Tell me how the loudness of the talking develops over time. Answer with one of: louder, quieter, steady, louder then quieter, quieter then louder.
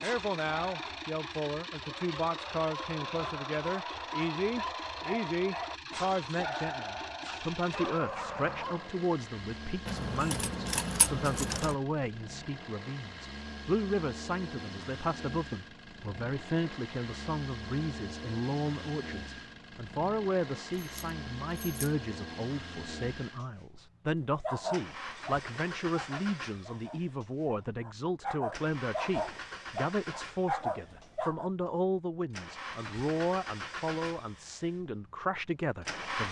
steady.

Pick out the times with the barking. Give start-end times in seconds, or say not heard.
0.0-8.9, 24.4-31.5.